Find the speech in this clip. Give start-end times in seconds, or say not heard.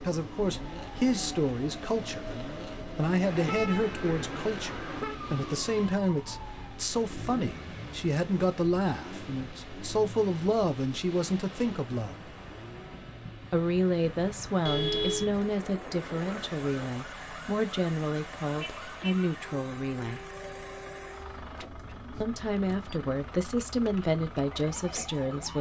0.0-12.3, 13.5-20.2, 22.2-25.5.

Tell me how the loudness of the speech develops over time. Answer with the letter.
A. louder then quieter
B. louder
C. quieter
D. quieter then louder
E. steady
E.